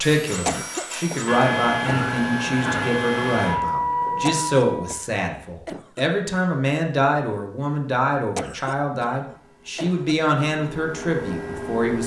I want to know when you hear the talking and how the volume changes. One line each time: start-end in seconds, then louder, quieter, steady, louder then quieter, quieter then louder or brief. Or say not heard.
0.0-12.0 steady.